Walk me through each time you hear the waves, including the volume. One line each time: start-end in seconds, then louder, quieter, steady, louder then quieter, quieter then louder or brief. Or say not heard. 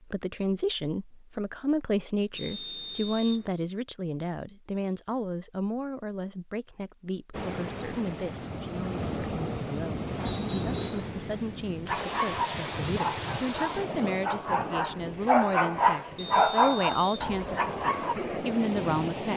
7.3-19.3 quieter then louder.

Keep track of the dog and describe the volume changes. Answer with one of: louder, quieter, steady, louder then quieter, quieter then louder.
louder then quieter.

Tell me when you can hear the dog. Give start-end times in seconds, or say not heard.
11.8-18.1.